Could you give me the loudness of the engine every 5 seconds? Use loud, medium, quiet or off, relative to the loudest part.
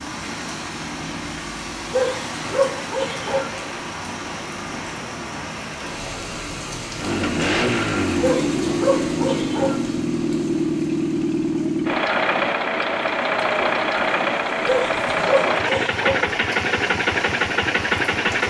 quiet, loud, loud, loud.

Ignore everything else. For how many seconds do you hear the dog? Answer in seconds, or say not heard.
5 s.